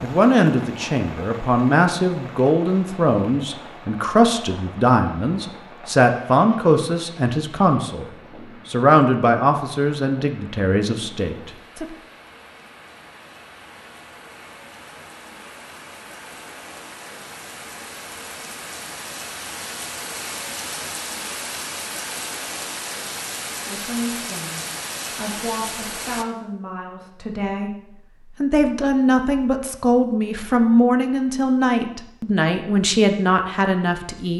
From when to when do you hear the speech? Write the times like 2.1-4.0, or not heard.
0.0-11.8, 23.6-34.3.